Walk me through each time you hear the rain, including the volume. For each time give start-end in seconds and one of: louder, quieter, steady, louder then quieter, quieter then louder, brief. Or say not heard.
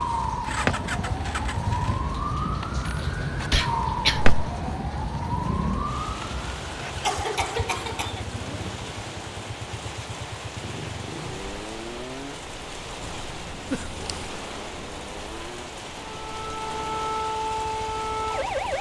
0.0-18.7 steady.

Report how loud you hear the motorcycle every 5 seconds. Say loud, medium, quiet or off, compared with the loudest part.
loud, loud, medium, medium.